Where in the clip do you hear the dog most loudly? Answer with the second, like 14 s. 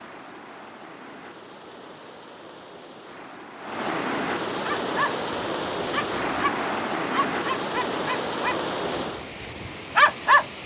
10 s.